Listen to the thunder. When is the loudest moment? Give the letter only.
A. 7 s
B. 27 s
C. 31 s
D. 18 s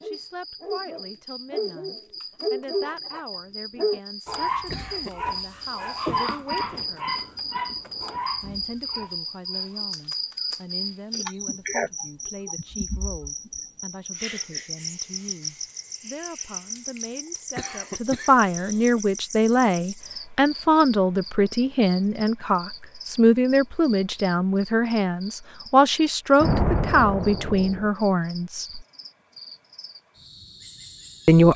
B.